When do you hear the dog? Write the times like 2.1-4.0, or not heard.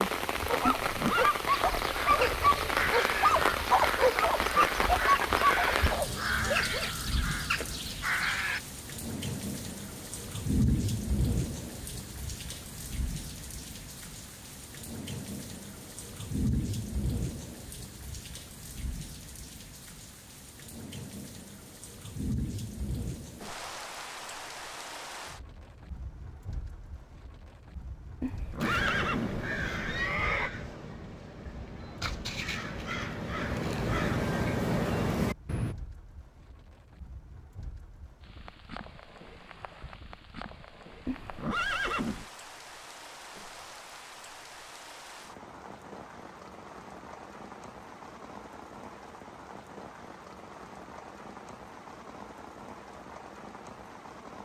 0.5-6.9.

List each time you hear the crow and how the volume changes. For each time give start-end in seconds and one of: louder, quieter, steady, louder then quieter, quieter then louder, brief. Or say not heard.
1.4-8.6 steady
28.6-35.8 quieter then louder.